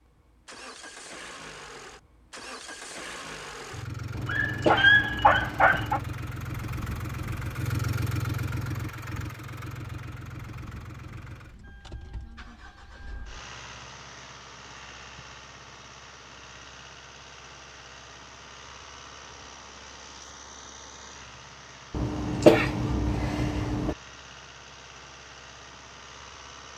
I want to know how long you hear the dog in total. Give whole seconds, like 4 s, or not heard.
2 s.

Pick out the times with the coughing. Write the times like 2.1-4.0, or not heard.
4.1-6.1, 21.9-23.9.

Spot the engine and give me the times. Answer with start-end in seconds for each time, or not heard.
0.0-26.7.